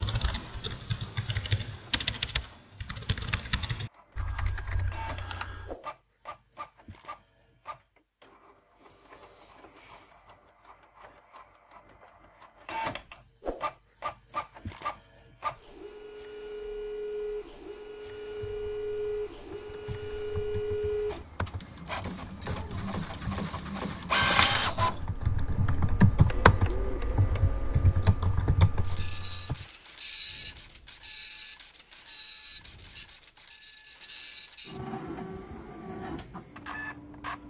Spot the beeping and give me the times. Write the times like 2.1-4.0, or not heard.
not heard.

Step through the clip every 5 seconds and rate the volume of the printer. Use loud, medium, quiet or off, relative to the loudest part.
quiet, quiet, medium, medium, loud, medium, medium, medium.